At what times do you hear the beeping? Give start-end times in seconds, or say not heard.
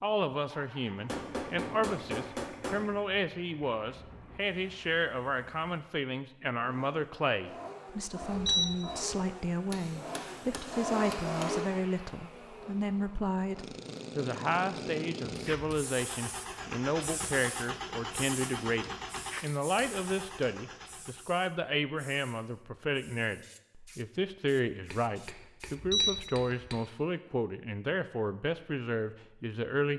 8.2-8.8, 25.6-26.6.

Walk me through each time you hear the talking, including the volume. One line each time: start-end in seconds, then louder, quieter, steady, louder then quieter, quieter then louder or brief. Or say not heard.
0.0-29.9 steady.